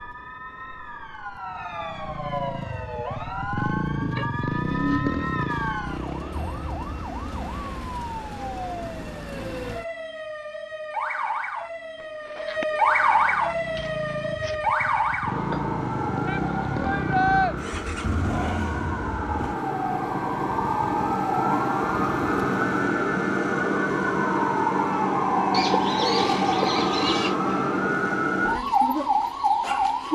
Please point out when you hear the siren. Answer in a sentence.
You can hear the siren from 0.0 to 30.1 s.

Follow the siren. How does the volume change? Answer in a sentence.
The volume of the siren goes up.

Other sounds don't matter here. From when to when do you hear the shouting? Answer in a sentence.
The shouting can be heard from 16.2 to 17.6 s.